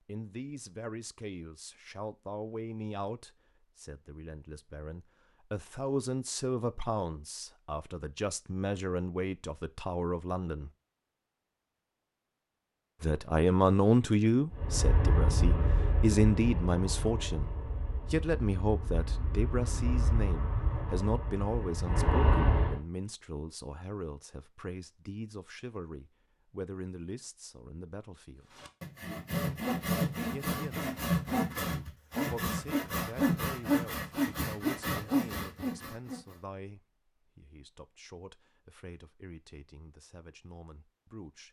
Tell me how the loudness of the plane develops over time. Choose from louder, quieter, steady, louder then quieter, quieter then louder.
quieter then louder.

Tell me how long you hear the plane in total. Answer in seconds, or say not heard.
8 s.